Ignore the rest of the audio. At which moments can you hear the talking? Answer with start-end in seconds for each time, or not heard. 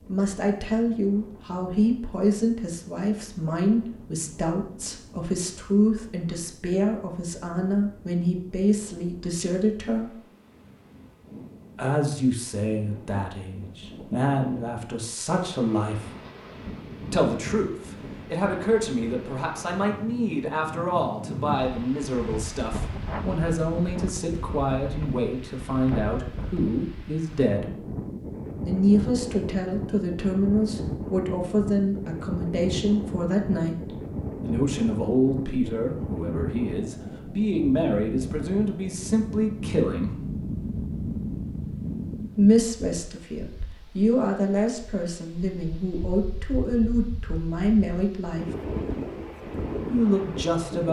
0.1-10.2, 11.8-16.1, 17.1-27.8, 28.6-40.2, 42.4-48.5, 49.9-50.8.